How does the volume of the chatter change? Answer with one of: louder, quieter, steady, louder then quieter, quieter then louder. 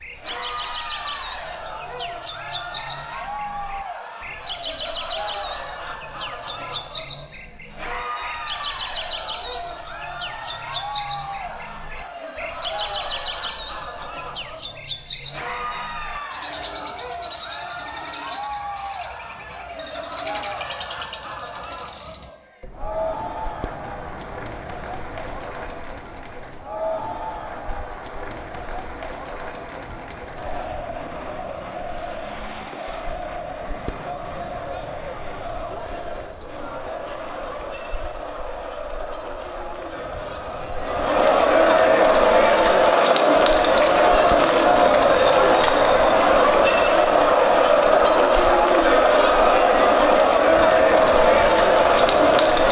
louder.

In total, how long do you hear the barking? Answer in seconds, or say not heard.
not heard.